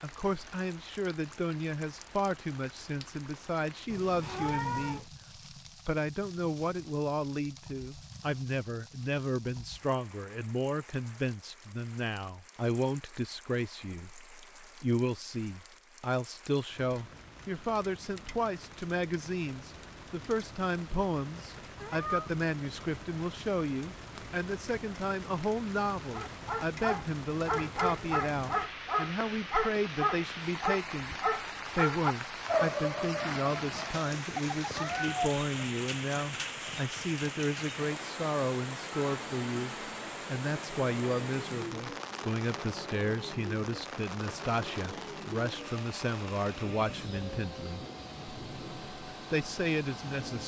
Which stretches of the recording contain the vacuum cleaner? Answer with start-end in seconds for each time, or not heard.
38.9-50.4.